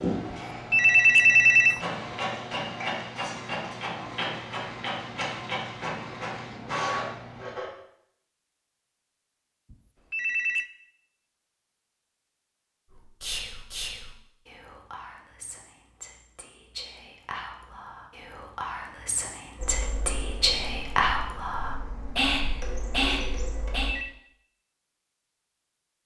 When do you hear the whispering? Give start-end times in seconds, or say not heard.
12.9-23.9.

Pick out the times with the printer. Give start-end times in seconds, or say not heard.
0.0-7.7, 19.6-23.9.